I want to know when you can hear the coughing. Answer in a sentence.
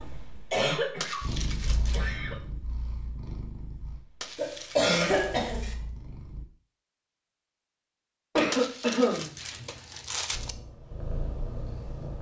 The coughing can be heard from 0.5 to 1.2 s, from 1.9 to 2.4 s, from 4.3 to 5.8 s and from 8.3 to 9.3 s.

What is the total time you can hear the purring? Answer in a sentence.
The purring can be heard for 8 seconds in total.